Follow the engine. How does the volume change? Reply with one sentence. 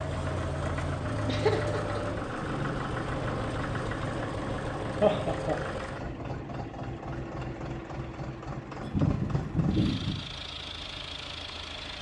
The volume of the engine goes down.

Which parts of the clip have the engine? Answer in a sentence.
The engine can be heard from 0.0 to 11.9 s.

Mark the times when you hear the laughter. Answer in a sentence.
The laughter can be heard from 1.2 to 2.0 s, from 5.0 to 5.6 s and from 8.8 to 10.2 s.